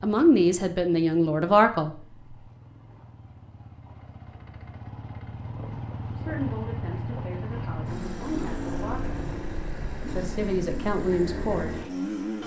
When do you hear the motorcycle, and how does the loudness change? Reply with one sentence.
You can hear the motorcycle from 0.0 to 12.4 s, getting louder.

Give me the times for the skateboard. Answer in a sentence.
The skateboard can't be heard in this clip.